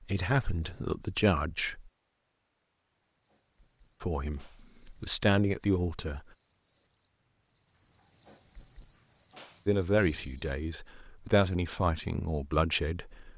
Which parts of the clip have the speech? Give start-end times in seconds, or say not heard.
0.1-1.9, 4.0-6.2, 9.7-13.3.